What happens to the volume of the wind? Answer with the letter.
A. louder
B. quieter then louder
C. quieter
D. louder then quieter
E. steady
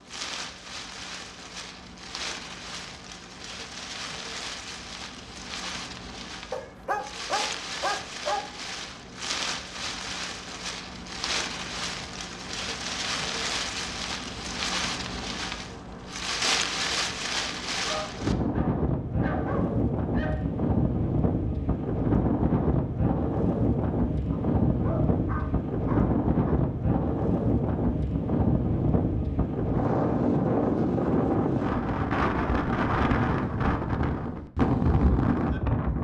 A.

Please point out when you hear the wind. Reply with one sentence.
The wind can be heard from 0.0 to 35.9 s.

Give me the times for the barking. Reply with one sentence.
The barking can be heard from 6.5 to 8.4 s, from 17.8 to 20.4 s and from 24.3 to 26.6 s.